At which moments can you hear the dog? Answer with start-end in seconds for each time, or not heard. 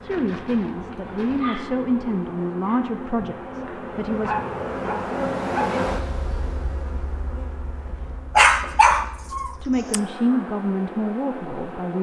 0.1-1.9, 4.2-5.8, 8.3-10.0.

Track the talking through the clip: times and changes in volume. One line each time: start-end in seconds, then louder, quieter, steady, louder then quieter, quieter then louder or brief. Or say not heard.
0.0-4.3 quieter
9.6-11.9 brief.